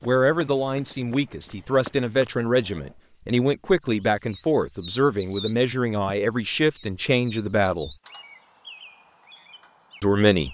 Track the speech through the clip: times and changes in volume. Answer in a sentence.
The speech can be heard from 0.0 to 8.0 s, at a steady volume; and briefly from 10.0 to 10.4 s.